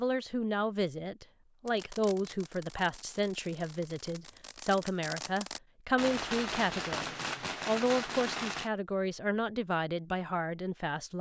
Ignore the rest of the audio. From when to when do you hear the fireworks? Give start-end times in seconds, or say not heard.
1.6-8.7.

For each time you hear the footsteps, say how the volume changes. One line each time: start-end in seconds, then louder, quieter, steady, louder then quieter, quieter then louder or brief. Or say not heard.
not heard.